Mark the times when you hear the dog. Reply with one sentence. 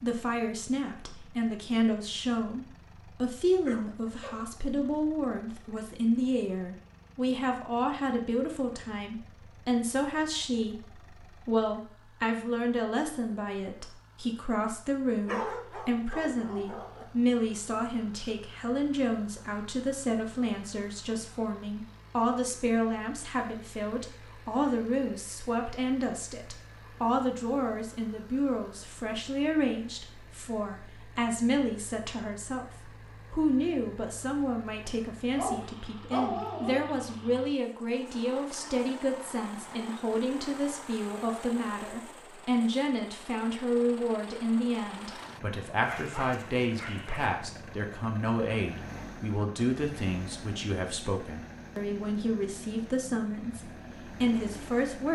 The dog can be heard from 3.6 to 4.4 s, from 15.2 to 17.1 s, from 34.9 to 36.9 s and from 45.8 to 47.4 s.